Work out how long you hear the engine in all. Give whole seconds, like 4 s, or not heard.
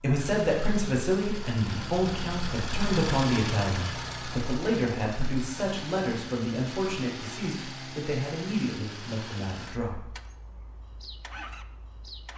12 s.